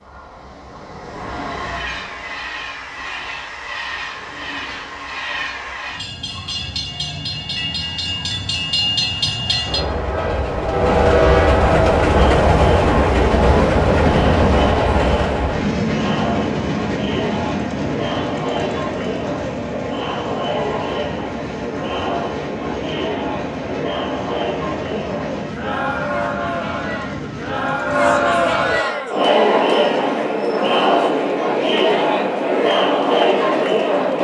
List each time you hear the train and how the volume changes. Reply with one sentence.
The train can be heard from 0.0 to 28.8 s, getting louder then quieter.